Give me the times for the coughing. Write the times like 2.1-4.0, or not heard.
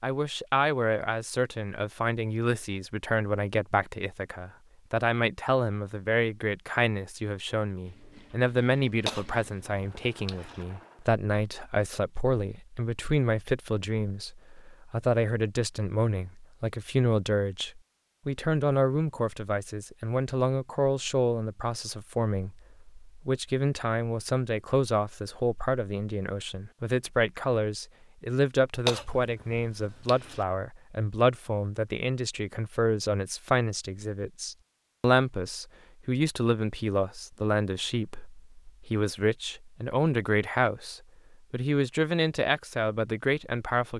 9.1-10.7, 28.9-30.4.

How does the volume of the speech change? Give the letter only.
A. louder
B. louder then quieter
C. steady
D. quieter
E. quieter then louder
C.